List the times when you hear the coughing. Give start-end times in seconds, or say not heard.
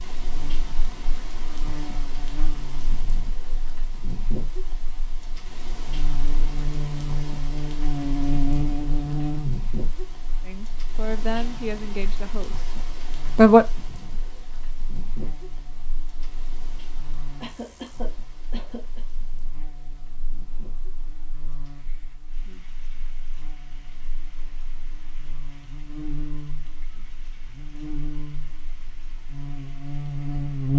17.4-19.0.